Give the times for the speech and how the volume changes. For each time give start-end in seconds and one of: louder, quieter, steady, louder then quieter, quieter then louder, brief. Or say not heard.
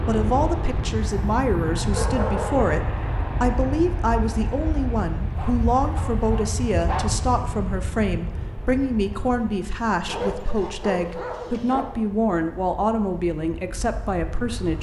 0.1-14.7 steady.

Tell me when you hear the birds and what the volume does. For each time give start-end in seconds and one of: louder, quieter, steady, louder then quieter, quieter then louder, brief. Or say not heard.
not heard.